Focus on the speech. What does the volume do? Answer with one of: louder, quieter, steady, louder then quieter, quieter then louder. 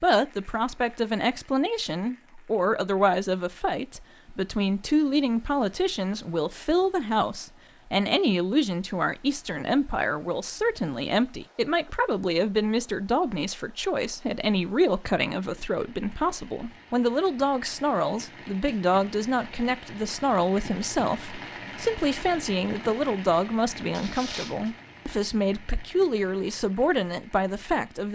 steady.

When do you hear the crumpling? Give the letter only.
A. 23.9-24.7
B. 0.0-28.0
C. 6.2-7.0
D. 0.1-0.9
A.